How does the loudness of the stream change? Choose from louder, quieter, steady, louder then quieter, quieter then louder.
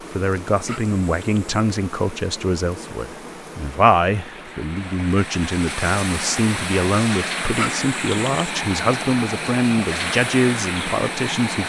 louder.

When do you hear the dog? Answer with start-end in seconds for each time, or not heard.
0.6-1.4, 7.5-8.5.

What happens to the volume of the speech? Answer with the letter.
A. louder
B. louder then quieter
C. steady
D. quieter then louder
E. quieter
C.